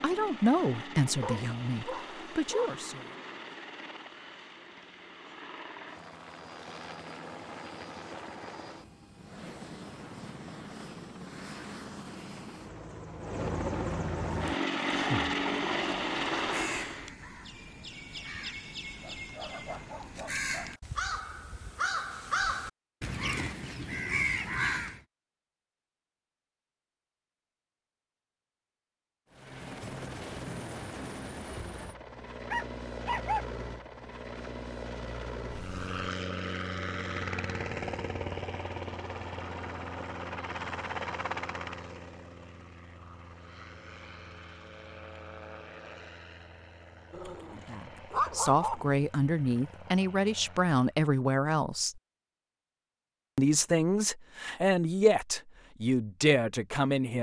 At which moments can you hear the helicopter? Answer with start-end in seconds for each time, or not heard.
0.0-17.1, 29.3-50.8.